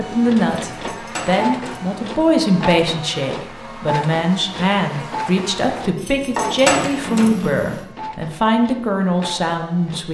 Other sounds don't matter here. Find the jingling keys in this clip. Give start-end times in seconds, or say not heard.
0.7-1.8, 6.0-7.3.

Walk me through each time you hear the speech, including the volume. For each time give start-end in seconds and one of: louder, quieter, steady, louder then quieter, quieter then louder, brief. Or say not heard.
0.0-10.0 steady.